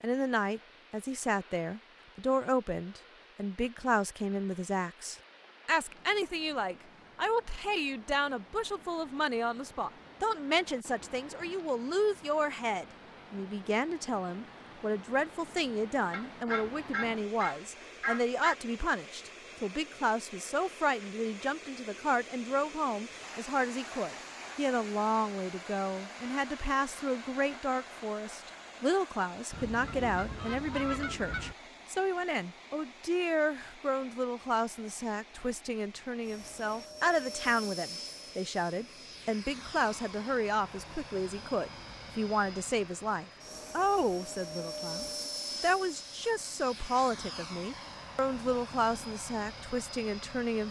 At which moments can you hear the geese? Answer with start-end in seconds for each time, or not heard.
16.1-18.6, 29.5-31.6.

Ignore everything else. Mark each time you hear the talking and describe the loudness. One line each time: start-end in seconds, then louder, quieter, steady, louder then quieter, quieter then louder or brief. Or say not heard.
0.0-50.6 steady.